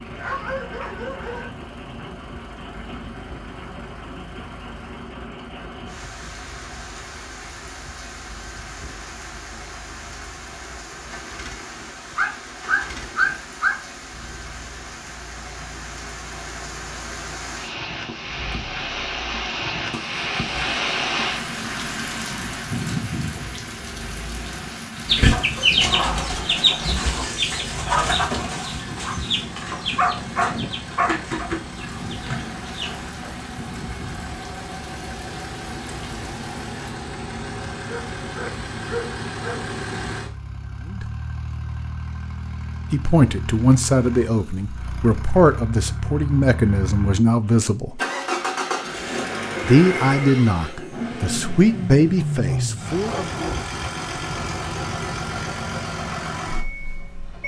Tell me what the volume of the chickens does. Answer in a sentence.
The volume of the chickens goes down.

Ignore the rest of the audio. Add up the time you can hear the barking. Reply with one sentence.
The barking can be heard for 8 seconds in total.